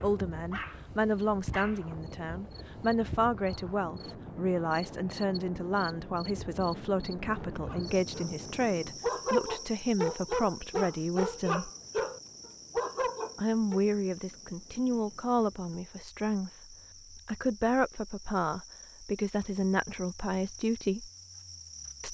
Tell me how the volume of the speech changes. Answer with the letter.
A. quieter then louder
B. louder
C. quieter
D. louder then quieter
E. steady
E.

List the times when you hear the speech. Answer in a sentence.
You can hear the speech from 0.0 to 11.7 s and from 13.3 to 21.1 s.